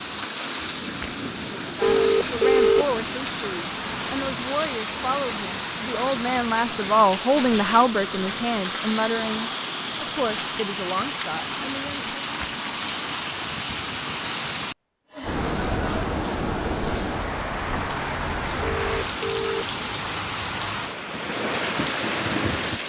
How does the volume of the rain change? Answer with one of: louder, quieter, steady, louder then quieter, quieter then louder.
steady.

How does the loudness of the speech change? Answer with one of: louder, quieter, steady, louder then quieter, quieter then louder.
louder then quieter.